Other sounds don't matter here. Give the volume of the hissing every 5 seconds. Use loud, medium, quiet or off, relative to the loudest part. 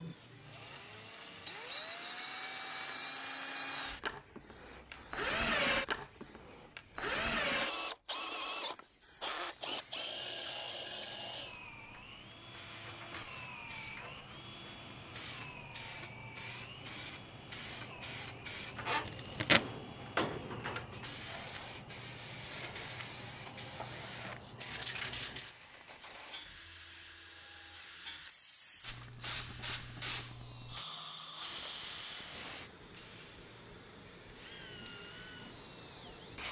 quiet, quiet, medium, loud, loud, loud, loud, loud.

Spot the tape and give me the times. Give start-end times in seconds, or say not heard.
19.1-19.6.